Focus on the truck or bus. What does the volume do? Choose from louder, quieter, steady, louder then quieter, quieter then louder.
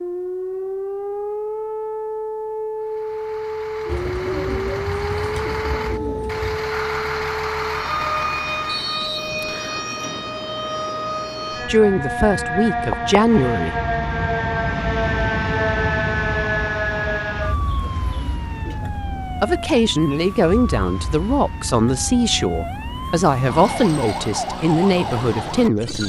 louder.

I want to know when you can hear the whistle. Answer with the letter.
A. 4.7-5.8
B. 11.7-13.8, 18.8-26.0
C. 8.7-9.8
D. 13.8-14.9
C.